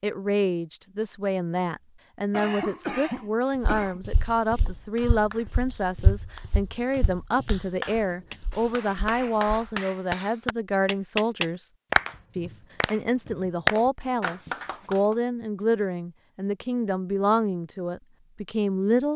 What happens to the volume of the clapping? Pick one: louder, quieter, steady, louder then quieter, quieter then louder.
louder.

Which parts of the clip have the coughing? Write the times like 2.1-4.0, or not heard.
2.3-4.0, 14.2-14.9.